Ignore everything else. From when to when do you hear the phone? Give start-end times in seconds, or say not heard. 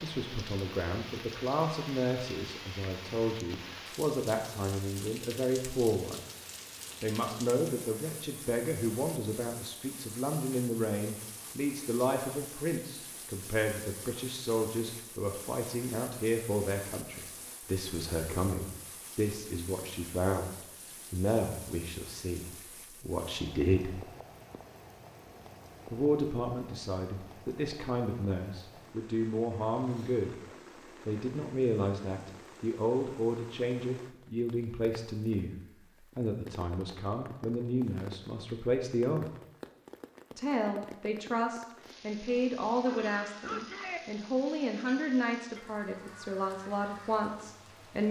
42.9-44.0.